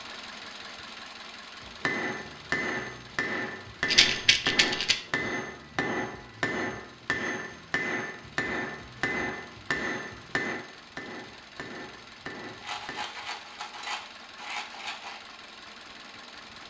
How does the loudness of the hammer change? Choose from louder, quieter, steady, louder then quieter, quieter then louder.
quieter.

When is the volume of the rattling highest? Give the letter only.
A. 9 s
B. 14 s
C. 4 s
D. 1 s
C.